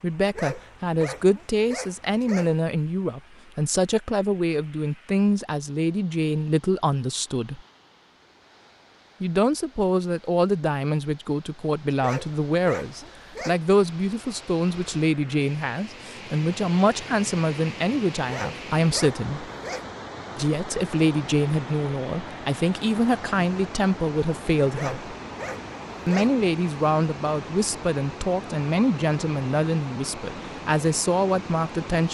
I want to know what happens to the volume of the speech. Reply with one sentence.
The volume of the speech stays about the same.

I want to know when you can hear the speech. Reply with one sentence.
The speech can be heard from 0.0 to 7.6 s, from 9.2 to 19.5 s, from 20.4 to 25.1 s and from 26.1 to 32.0 s.